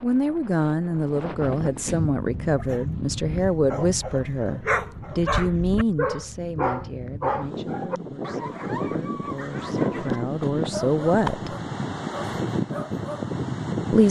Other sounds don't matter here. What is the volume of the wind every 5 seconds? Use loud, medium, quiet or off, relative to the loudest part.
medium, loud, loud.